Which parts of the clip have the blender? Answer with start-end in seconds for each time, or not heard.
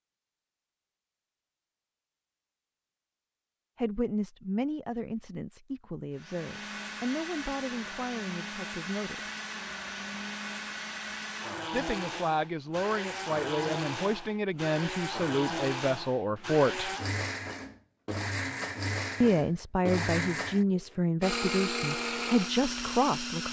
6.2-23.4.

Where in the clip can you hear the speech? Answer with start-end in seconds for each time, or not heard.
3.8-9.2, 11.7-16.9, 19.2-23.4.